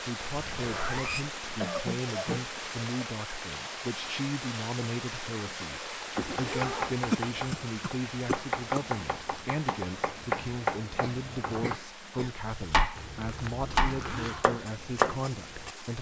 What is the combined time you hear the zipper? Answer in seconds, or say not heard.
4 s.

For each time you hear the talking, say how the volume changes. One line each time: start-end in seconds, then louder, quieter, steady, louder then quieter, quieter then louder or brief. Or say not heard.
0.0-15.9 steady.